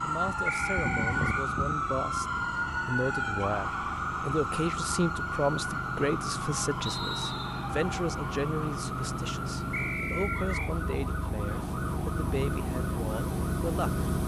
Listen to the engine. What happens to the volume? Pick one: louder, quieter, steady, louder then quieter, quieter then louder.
louder.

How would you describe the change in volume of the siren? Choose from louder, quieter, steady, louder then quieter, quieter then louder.
quieter.